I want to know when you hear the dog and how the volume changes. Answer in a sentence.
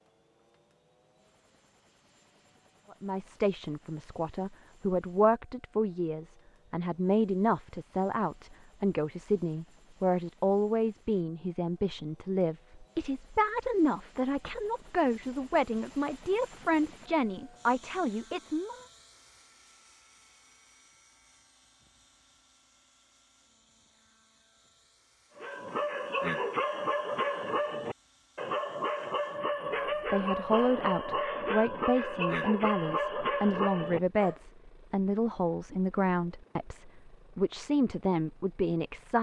The dog can be heard from 25.4 to 34.4 s, at a steady volume.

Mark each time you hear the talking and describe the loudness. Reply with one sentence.
The talking can be heard from 2.9 to 18.9 s, at a steady volume; and from 29.8 to 39.1 s, at a steady volume.